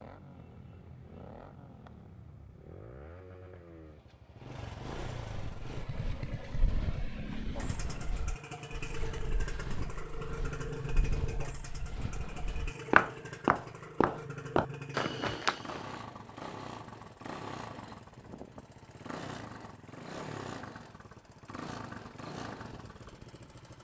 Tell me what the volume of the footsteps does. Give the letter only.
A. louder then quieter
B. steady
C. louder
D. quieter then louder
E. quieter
C.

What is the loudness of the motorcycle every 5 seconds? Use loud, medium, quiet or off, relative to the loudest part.
medium, loud, loud, loud, loud.